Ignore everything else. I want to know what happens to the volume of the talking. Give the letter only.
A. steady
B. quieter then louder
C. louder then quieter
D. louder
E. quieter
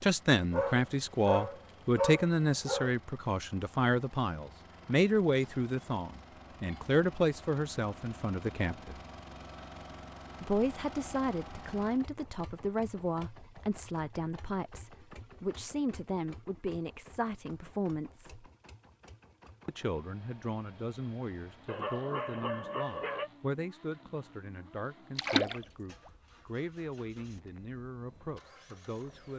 E.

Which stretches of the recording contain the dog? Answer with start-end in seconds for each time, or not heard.
0.5-3.0, 21.6-23.3.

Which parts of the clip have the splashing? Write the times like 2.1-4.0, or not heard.
25.1-25.6.